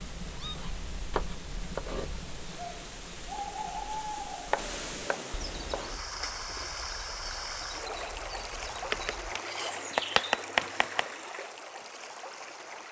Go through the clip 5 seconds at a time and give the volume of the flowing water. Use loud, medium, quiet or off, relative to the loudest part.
medium, loud, loud.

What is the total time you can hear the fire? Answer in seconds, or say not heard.
not heard.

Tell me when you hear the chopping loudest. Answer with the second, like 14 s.
10 s.